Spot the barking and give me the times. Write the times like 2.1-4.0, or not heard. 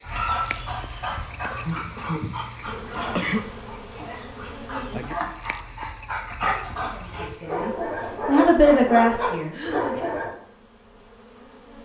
0.0-10.3.